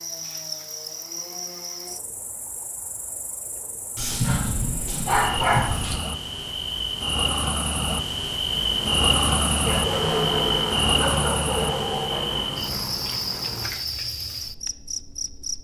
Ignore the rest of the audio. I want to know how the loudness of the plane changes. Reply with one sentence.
The loudness of the plane goes up, then down.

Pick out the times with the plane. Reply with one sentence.
You can hear the plane from 8.4 to 13.7 s.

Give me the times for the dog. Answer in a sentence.
You can hear the dog from 4.0 to 6.0 s and from 9.6 to 12.4 s.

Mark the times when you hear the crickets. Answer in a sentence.
You can hear the crickets from 0.0 to 15.6 s.